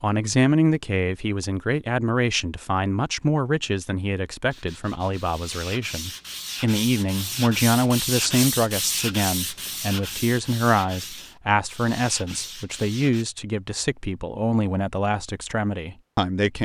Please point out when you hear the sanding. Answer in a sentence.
You can hear the sanding from 4.5 to 13.2 s.